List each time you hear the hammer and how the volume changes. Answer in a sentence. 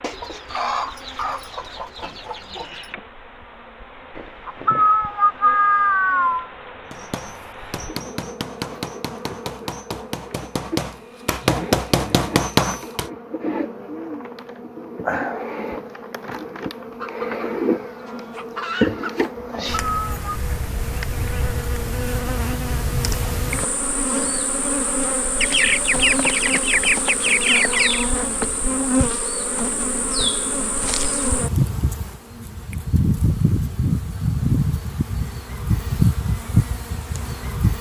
The hammer can be heard from 6.9 to 13.1 s, getting louder.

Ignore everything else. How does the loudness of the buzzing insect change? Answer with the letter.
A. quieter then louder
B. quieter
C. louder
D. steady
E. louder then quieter
C.